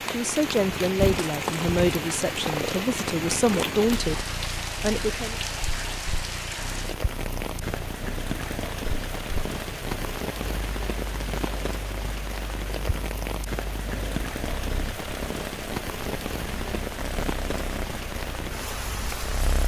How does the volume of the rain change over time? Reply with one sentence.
The loudness of the rain stays about the same.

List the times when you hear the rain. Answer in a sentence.
The rain can be heard from 0.0 to 19.6 s.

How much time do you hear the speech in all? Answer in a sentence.
The speech can be heard for 5 seconds in total.